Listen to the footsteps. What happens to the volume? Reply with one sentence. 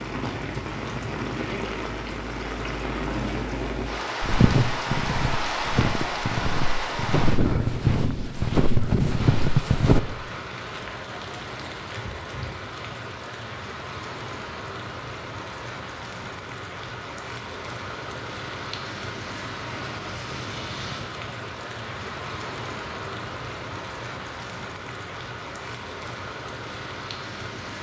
The loudness of the footsteps goes up.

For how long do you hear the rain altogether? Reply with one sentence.
You can hear the rain for 28 seconds altogether.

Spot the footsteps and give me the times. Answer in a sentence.
The footsteps can be heard from 4.2 to 10.0 s.